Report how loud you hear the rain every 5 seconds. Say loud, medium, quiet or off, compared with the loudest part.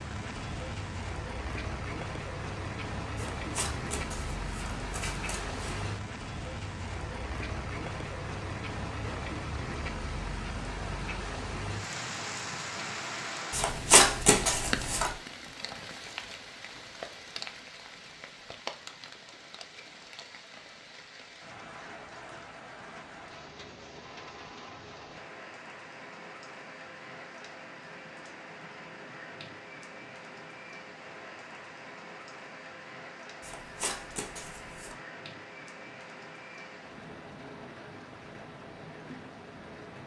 loud, loud, loud, medium, medium, medium, medium, medium.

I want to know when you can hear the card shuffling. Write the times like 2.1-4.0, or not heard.
3.4-5.8, 13.5-15.1, 33.4-35.0.